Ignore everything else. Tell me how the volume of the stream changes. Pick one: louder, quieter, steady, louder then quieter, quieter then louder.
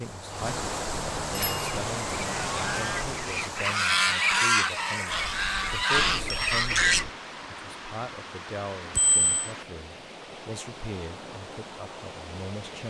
quieter.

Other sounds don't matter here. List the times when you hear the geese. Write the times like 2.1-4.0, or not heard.
1.3-7.0.